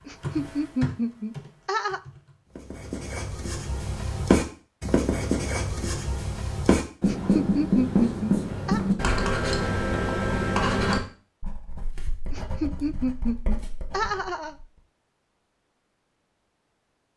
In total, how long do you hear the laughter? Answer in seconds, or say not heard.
6 s.